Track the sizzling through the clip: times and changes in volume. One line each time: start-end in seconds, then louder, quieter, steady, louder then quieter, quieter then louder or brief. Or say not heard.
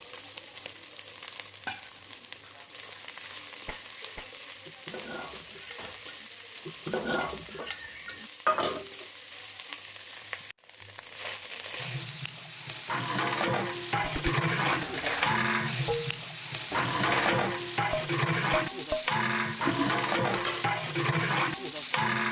0.0-22.2 louder.